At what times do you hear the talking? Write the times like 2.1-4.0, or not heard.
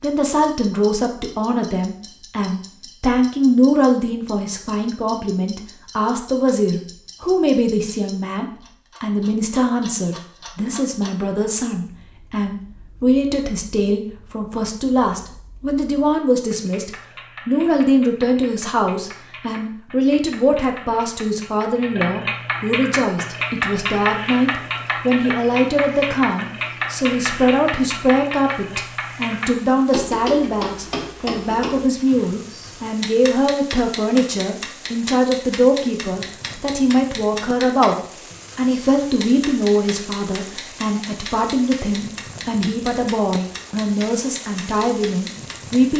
0.0-38.0, 38.5-45.9.